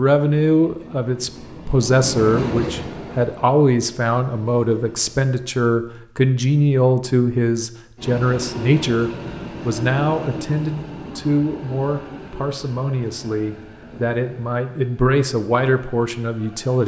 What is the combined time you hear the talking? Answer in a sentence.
You can hear the talking for 17 seconds altogether.